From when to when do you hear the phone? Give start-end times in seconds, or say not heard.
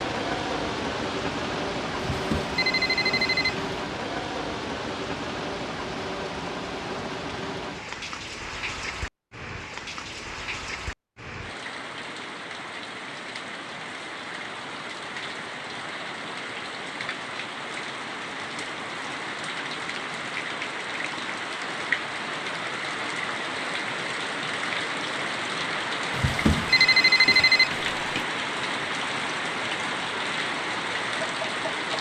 2.1-3.6, 26.1-28.2.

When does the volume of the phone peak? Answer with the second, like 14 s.
27 s.